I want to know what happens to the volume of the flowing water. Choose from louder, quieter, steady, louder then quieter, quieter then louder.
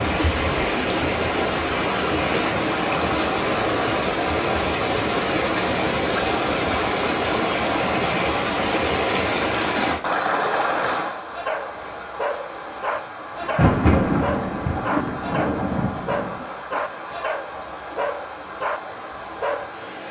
quieter.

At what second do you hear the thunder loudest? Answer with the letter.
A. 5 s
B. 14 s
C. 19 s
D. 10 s
B.